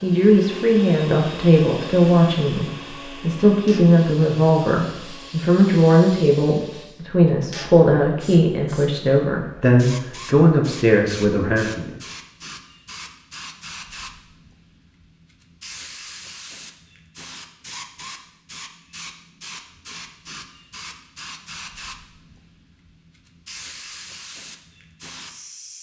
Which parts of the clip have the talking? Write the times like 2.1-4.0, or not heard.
0.0-11.9.